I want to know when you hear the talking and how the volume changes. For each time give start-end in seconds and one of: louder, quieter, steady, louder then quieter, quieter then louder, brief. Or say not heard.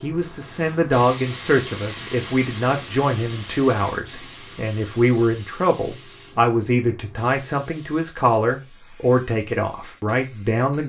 0.0-10.8 steady.